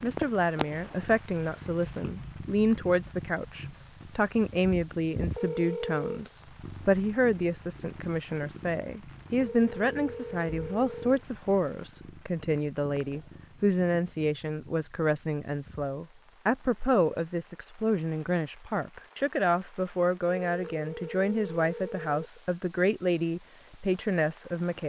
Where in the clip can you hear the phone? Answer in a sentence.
You can hear the phone from 5.3 to 6.2 s, from 9.4 to 11.2 s and from 20.4 to 22.2 s.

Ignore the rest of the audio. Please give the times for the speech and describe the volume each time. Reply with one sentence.
You can hear the speech from 0.0 to 24.8 s, at a steady volume.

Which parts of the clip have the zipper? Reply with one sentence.
The zipper can't be heard in this clip.